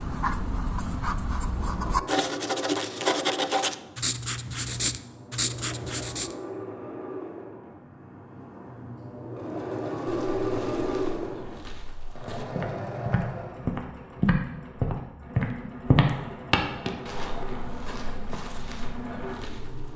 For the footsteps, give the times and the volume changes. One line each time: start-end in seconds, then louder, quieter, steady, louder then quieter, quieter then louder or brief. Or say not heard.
10.1-19.9 louder then quieter.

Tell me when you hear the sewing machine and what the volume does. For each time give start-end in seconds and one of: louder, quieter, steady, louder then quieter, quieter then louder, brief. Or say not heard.
0.0-19.9 louder then quieter.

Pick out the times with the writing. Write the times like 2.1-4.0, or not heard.
0.0-6.3.